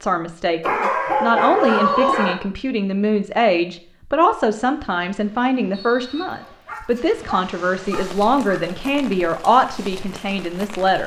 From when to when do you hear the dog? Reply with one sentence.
You can hear the dog from 0.6 to 2.4 s and from 6.0 to 8.8 s.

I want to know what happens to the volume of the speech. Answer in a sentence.
The volume of the speech stays about the same.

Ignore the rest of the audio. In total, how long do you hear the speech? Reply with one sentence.
You can hear the speech for 11 seconds altogether.